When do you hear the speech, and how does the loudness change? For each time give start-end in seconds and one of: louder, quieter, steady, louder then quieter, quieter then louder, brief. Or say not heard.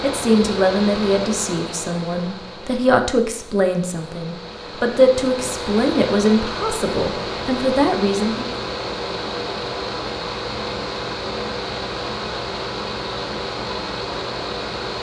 0.0-8.6 steady.